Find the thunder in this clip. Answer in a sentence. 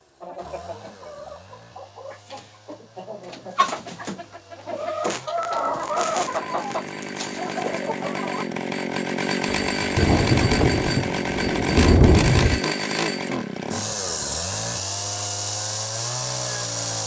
You can hear the thunder from 9.4 to 12.6 s.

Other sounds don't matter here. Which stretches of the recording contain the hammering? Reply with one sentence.
You can't hear the hammering here.